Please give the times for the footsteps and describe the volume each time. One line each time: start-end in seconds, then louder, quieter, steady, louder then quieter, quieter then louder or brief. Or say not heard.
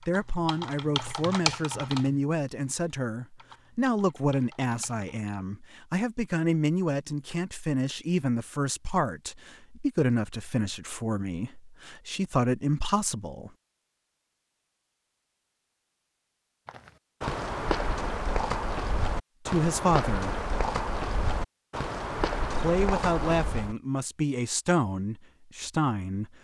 16.6-23.8 steady.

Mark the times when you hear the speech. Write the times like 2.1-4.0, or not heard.
0.0-13.5, 19.4-20.4, 22.4-26.3.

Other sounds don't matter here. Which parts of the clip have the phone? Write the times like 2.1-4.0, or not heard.
not heard.